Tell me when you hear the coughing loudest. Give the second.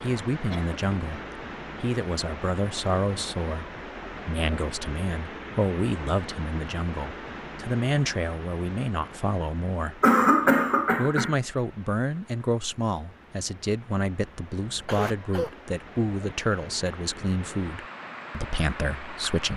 10 s.